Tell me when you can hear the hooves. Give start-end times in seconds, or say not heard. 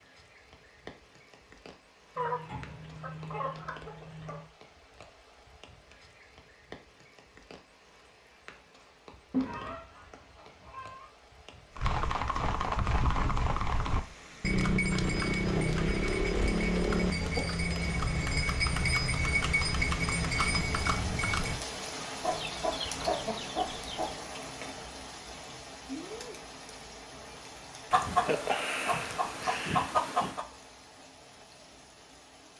11.8-21.6.